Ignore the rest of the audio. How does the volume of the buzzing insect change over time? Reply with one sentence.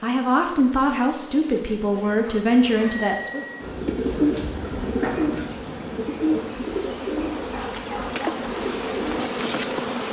The loudness of the buzzing insect goes up.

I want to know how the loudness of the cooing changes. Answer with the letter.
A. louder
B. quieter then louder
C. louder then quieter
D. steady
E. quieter
E.